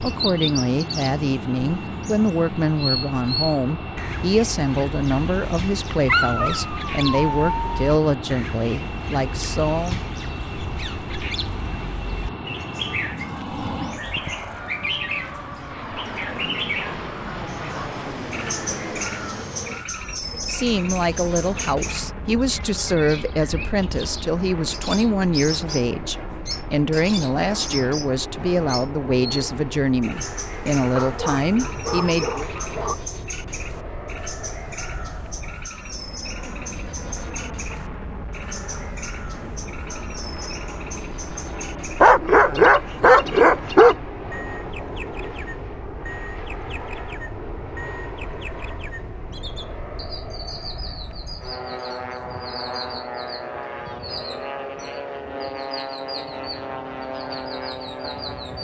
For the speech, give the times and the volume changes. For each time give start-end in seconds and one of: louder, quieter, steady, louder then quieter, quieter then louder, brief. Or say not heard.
0.0-10.0 steady
20.3-32.5 steady.